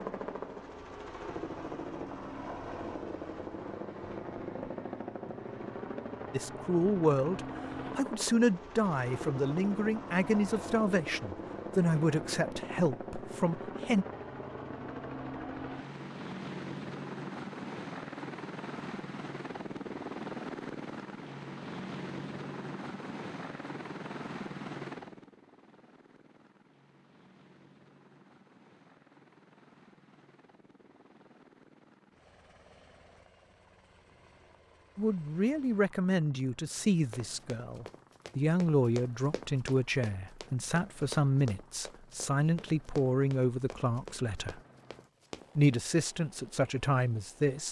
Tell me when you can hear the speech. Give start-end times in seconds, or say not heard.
6.3-14.1, 35.0-44.6, 45.5-47.6.